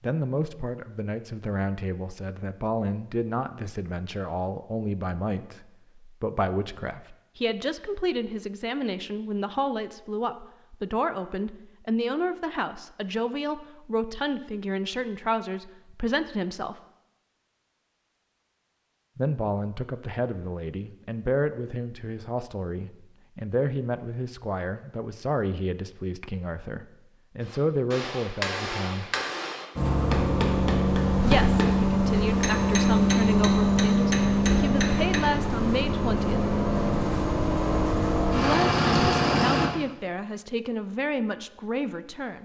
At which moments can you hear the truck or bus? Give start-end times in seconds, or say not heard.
29.8-39.7.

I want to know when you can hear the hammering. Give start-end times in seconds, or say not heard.
27.4-35.3.